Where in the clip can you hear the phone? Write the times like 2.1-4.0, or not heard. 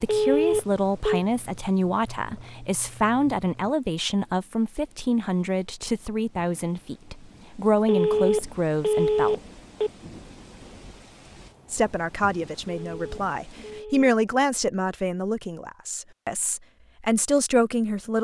0.1-1.2, 7.8-9.9, 12.8-14.1.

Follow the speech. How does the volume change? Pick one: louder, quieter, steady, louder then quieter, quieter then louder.
steady.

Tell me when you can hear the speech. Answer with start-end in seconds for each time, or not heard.
0.0-9.4, 11.7-18.2.